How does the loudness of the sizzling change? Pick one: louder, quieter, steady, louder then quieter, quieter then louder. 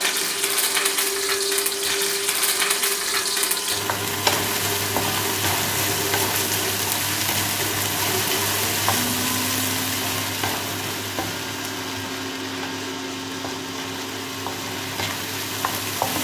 quieter.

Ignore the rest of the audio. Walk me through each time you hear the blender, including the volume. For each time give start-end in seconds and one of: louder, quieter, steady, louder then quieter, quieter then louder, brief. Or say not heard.
0.0-16.1 steady.